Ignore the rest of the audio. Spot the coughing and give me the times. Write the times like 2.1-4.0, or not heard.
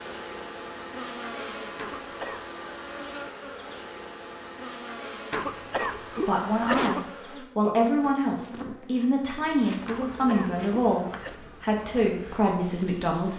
1.8-2.5, 5.3-7.1, 9.8-11.3.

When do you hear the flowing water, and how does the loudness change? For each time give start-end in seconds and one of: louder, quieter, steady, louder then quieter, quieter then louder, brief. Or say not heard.
not heard.